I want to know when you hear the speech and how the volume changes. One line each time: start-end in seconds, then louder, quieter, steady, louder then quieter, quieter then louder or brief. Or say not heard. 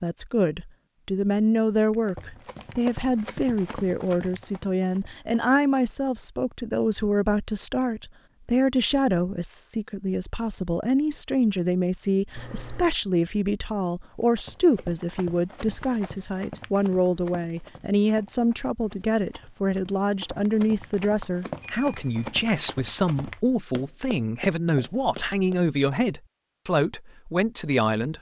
0.0-28.1 steady.